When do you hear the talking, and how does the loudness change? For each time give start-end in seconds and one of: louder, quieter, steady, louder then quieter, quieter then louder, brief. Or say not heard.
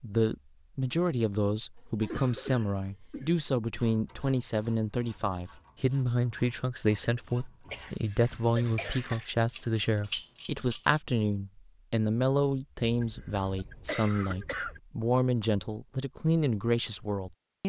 0.0-17.6 steady.